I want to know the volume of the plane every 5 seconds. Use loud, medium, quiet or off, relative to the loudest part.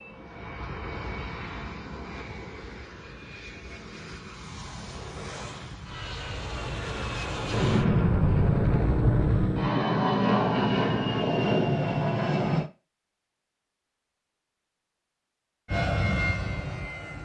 quiet, medium, loud, medium.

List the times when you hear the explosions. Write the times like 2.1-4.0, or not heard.
7.5-9.5.